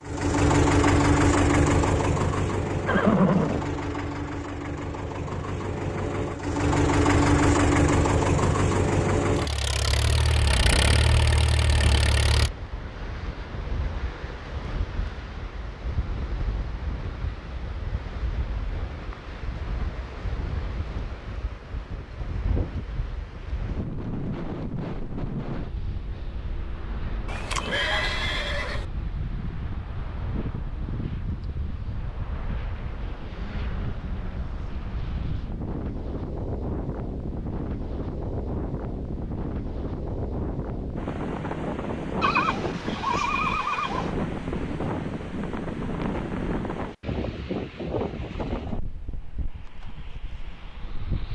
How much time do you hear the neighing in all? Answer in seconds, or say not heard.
4 s.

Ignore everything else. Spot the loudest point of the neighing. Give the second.
3 s.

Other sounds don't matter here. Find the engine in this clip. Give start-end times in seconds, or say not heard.
0.0-12.5.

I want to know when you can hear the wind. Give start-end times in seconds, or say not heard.
9.7-51.2.